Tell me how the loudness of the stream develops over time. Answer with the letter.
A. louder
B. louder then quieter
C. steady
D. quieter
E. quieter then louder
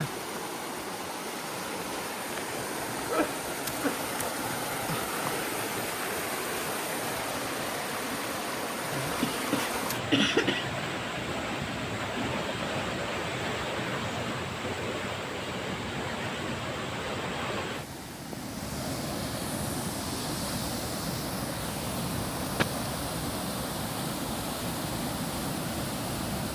C.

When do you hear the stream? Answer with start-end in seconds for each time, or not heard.
0.0-26.5.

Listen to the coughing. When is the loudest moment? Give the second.
10 s.